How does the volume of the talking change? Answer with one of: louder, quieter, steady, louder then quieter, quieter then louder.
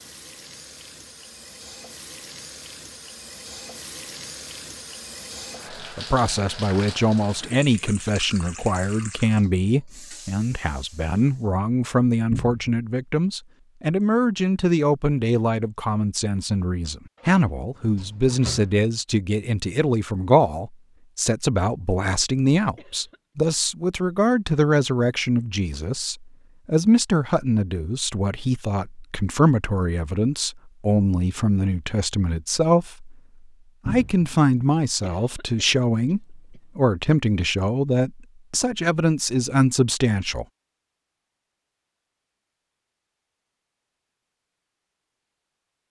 steady.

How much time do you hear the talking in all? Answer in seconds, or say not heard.
34 s.